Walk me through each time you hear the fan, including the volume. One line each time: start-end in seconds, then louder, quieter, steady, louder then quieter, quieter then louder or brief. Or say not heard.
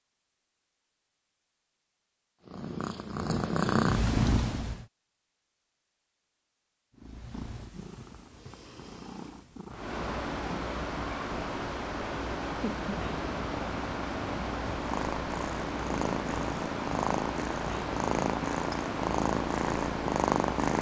9.7-20.7 steady.